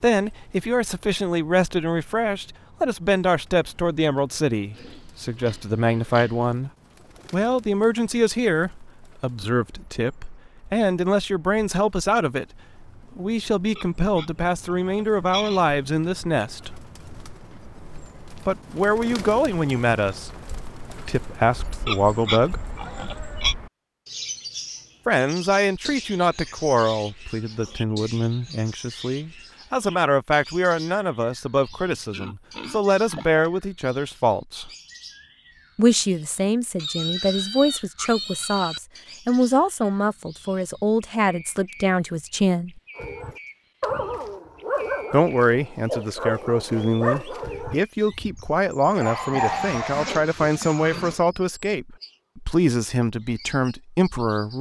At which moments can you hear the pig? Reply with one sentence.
The pig can be heard from 4.8 to 6.5 s, from 13.8 to 15.6 s, from 21.9 to 23.6 s, from 31.8 to 33.5 s, from 36.8 to 38.8 s and from 49.3 to 51.2 s.